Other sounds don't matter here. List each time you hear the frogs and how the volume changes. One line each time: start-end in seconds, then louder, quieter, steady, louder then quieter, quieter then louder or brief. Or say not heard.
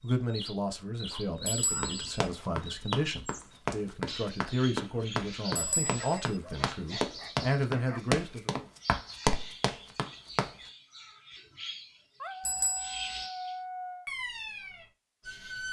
not heard.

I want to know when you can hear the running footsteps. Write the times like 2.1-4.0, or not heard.
1.8-10.5.